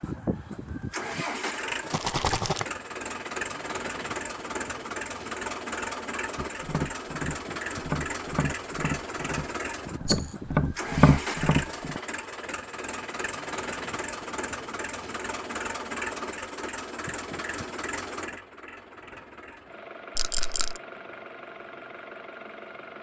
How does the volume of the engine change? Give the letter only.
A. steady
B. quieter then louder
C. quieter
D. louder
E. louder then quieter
C.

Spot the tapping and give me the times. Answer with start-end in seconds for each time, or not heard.
6.3-12.0.